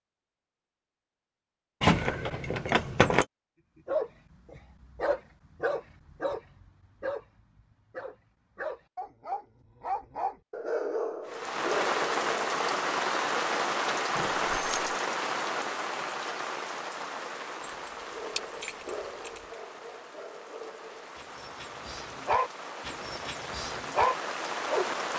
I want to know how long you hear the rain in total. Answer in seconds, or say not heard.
14 s.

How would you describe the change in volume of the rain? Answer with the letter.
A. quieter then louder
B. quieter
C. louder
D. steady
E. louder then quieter
A.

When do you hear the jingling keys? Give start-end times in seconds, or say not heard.
1.8-3.2, 14.2-14.9, 17.6-19.4.